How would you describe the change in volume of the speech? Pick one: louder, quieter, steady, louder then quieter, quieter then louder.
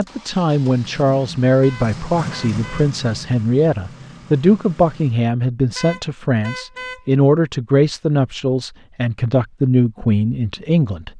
steady.